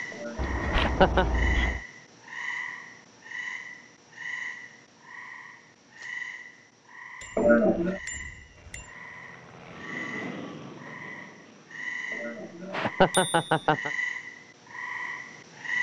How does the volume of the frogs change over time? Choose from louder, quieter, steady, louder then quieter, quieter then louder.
quieter then louder.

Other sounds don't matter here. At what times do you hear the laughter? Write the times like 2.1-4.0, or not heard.
0.1-1.2, 7.3-8.0, 12.1-13.9.